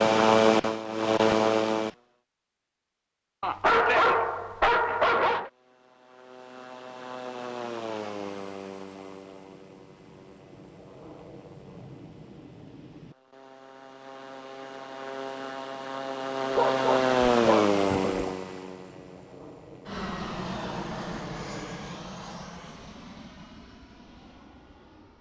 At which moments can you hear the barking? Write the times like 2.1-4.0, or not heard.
3.4-5.5, 16.6-18.4.